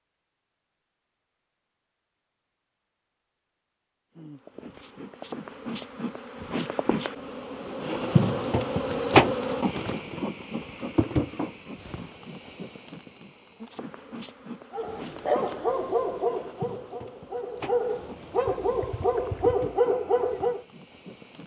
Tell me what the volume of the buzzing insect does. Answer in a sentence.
The volume of the buzzing insect goes up, then down.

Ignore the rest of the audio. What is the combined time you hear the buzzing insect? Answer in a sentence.
You can hear the buzzing insect for 17 seconds altogether.